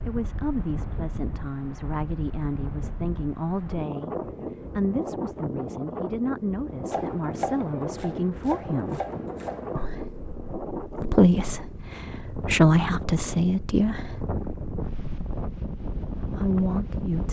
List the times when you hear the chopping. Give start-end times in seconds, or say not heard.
6.9-9.8.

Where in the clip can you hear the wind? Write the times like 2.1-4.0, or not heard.
0.0-17.2.